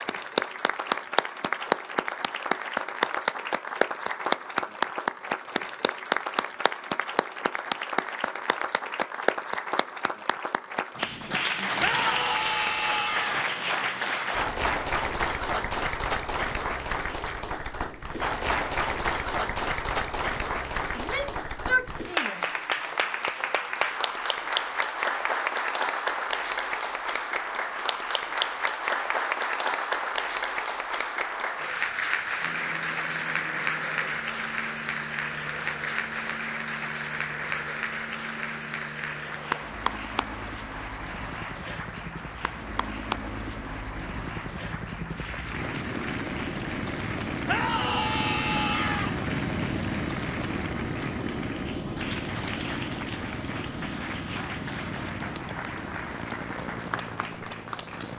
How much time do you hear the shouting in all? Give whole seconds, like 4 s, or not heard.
5 s.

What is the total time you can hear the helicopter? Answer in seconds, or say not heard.
26 s.